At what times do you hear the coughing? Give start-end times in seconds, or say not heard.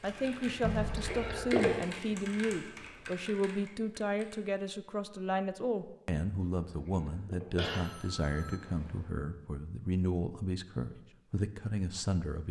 0.6-1.7, 6.4-7.8.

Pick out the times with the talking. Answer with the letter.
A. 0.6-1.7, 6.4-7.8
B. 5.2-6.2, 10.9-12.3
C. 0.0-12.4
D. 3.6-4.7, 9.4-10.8
C.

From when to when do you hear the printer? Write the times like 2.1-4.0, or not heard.
not heard.